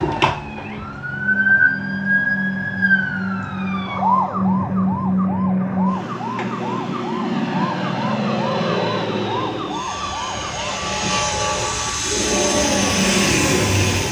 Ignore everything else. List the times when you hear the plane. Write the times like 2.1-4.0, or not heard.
0.1-14.0.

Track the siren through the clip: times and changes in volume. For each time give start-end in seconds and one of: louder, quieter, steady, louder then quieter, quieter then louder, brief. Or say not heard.
0.0-14.0 quieter.